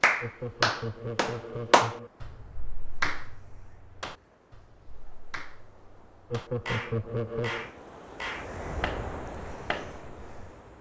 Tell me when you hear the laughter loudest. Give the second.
7 s.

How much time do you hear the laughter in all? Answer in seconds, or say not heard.
3 s.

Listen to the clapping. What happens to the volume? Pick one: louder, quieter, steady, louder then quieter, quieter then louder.
quieter then louder.